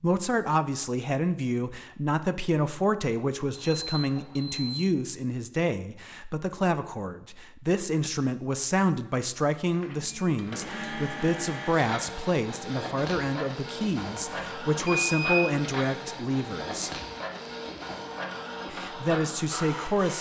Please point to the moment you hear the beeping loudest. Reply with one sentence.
The volume of the beeping peaks at 15 seconds.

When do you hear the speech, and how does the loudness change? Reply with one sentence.
The speech can be heard from 0.0 to 16.9 s, at a steady volume; and briefly from 18.7 to 20.1 s.